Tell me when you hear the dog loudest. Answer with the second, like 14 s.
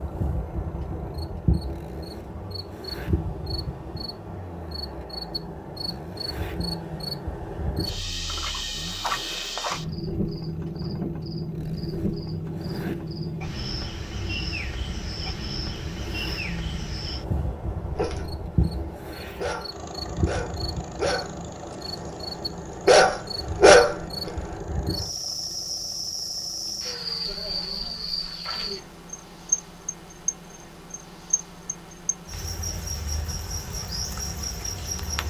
24 s.